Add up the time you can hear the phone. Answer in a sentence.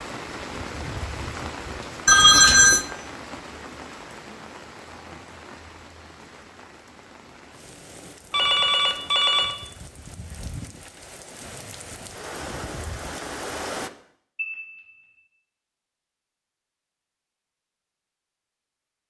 You can hear the phone for 3 seconds altogether.